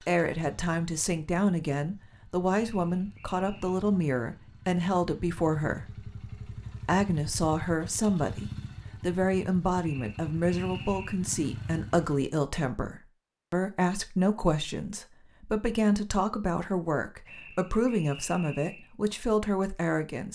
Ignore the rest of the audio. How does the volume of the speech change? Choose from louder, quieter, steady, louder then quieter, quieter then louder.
steady.